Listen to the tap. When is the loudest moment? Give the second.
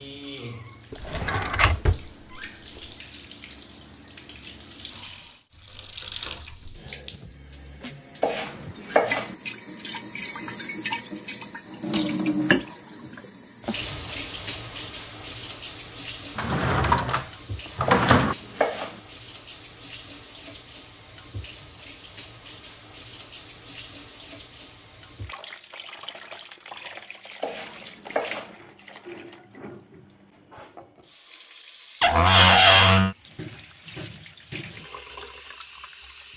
12 s.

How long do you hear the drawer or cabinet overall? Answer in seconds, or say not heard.
4 s.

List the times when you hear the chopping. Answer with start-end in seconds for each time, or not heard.
8.2-9.3, 17.9-19.0, 27.4-28.6.